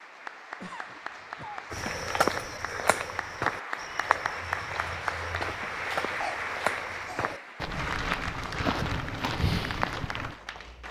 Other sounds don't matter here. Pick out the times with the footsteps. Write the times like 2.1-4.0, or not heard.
1.7-10.3.